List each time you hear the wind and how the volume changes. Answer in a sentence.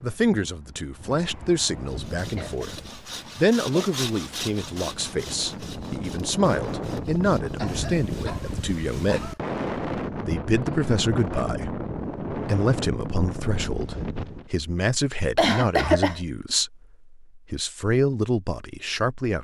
The wind can be heard from 0.0 to 14.5 s, getting louder.